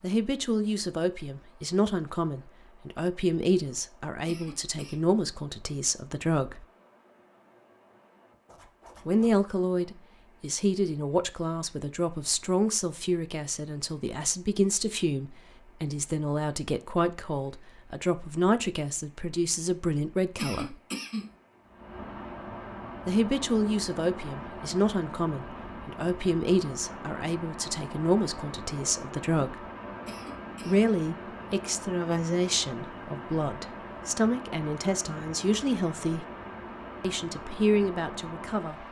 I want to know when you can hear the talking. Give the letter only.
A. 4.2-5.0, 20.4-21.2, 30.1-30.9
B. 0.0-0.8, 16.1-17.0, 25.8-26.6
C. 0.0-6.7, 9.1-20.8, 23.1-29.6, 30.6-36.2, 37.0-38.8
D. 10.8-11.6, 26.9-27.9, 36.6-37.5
C.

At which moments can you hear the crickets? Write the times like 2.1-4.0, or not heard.
not heard.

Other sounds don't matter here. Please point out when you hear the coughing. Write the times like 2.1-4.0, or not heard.
4.2-5.0, 20.4-21.2, 30.1-30.9.